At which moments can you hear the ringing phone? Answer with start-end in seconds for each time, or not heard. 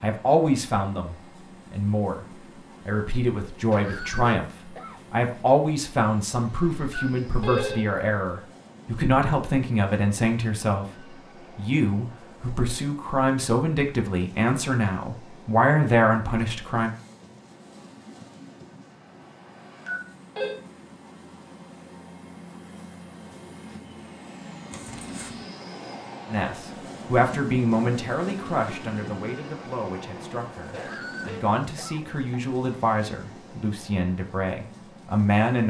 6.9-7.8, 19.9-20.6, 24.7-25.4.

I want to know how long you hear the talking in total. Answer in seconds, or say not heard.
26 s.